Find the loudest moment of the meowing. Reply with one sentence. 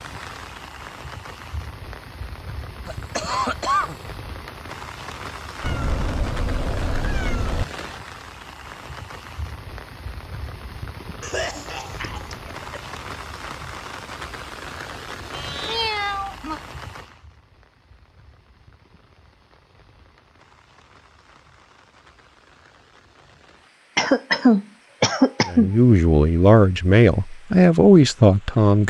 The loudest moment of the meowing is at 16 seconds.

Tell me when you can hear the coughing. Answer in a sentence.
You can hear the coughing from 2.9 to 4.0 s, from 11.2 to 12.8 s and from 23.9 to 25.7 s.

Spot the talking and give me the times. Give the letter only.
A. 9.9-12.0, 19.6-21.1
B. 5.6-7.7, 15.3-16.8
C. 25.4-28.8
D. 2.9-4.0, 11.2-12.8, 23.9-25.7
C.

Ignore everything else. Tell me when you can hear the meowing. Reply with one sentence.
You can hear the meowing from 5.6 to 7.7 s and from 15.3 to 16.8 s.